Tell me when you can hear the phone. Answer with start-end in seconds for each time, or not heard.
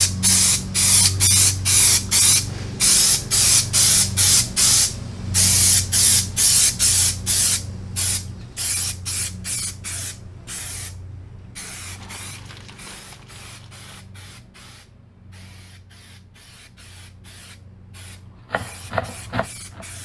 not heard.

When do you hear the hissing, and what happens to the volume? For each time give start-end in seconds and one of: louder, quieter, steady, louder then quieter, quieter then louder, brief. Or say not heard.
0.0-20.0 quieter.